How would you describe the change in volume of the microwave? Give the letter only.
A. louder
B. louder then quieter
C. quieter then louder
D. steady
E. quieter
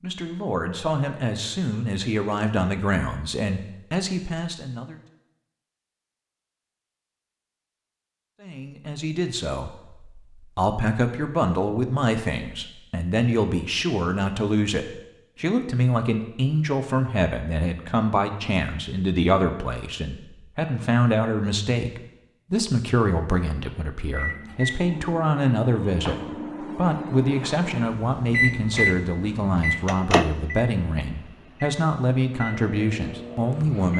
B.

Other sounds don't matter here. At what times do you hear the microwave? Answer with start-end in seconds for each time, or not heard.
24.1-33.9.